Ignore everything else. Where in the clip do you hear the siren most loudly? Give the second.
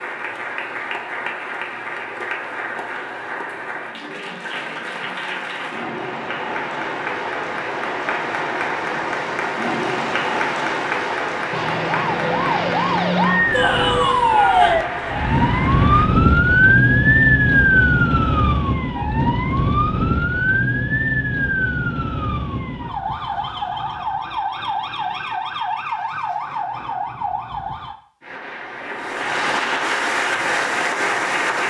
17 s.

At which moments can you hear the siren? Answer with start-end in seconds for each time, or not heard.
11.5-27.9.